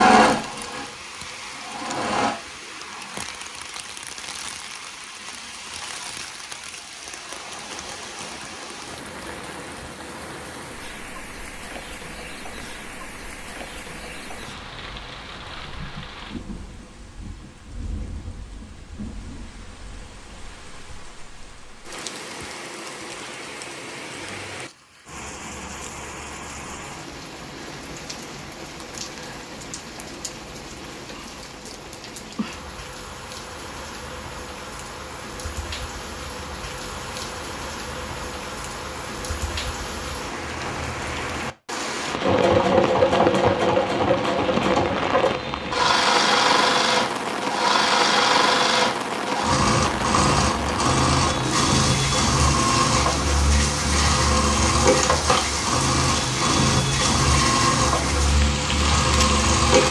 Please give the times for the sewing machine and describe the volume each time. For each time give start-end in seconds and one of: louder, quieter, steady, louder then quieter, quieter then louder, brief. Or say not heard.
0.0-2.4 brief
42.2-59.8 steady.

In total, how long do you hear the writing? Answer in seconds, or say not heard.
not heard.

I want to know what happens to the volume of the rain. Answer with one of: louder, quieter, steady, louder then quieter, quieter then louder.
louder.